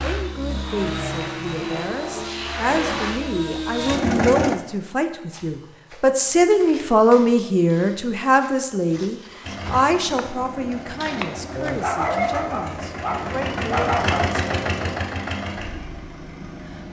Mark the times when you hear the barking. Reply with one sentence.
You can hear the barking from 11.6 to 14.3 s.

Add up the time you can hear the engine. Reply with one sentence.
You can hear the engine for 12 seconds altogether.